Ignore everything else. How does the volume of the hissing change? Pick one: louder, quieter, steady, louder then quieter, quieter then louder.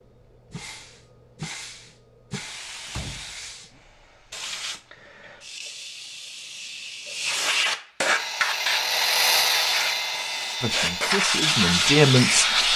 louder.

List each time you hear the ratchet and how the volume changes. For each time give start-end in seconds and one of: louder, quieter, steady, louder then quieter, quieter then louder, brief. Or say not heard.
not heard.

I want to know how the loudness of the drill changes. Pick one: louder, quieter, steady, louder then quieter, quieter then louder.
quieter.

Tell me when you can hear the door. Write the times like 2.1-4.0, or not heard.
2.9-3.8.